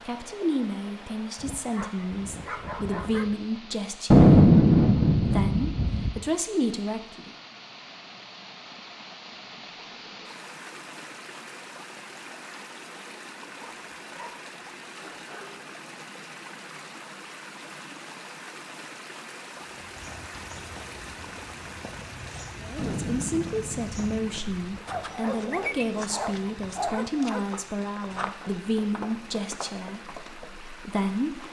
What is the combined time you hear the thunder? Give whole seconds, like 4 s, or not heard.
4 s.